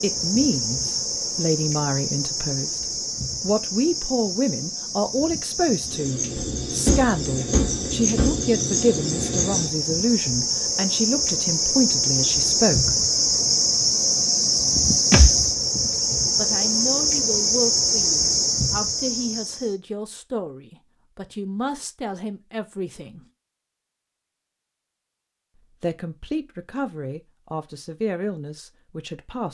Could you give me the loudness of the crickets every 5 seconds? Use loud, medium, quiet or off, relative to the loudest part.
medium, medium, loud, loud, off, off.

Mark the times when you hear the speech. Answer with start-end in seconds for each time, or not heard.
0.0-2.8, 3.4-13.0, 16.4-23.2, 25.8-29.5.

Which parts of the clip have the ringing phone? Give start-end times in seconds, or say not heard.
not heard.